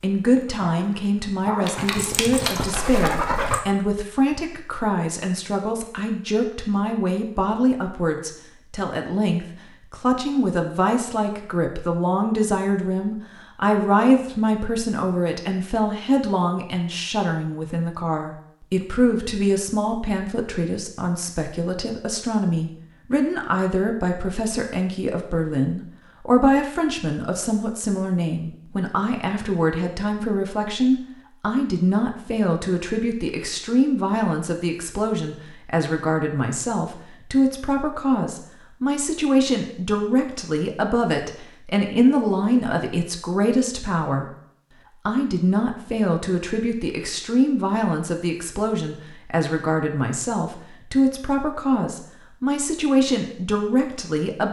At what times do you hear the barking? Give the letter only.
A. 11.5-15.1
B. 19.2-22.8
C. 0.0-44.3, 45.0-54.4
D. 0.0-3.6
D.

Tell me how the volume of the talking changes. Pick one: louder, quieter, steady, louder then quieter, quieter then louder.
steady.